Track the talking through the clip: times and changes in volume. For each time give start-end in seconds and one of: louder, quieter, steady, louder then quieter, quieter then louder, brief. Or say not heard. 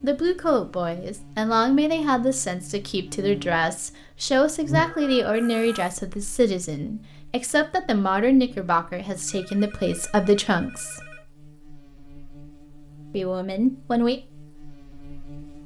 0.0-11.0 steady
13.1-14.2 brief.